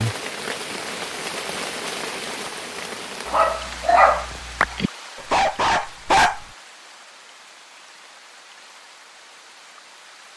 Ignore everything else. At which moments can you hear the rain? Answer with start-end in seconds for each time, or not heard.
0.0-10.3.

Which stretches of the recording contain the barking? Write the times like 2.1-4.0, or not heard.
3.2-6.4.